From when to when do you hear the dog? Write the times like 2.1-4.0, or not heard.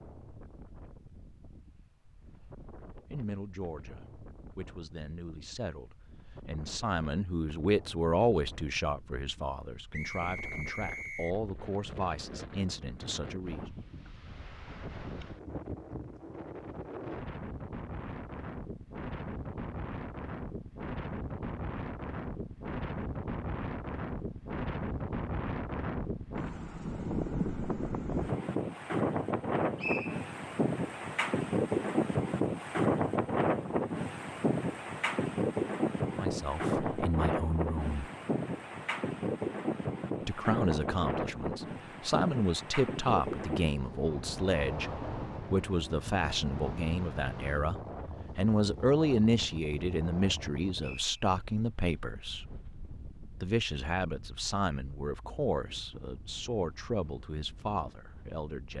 not heard.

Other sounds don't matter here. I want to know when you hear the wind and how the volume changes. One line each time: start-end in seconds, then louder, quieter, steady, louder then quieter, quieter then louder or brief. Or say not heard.
0.0-58.7 louder then quieter.